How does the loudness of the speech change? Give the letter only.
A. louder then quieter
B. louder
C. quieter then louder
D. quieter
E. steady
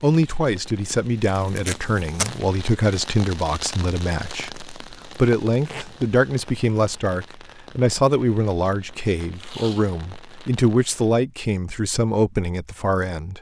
E.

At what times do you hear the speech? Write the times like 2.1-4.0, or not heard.
0.0-13.3.